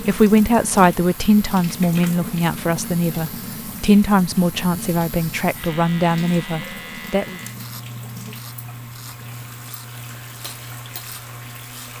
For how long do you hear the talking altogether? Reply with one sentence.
The talking can be heard for 7 seconds in total.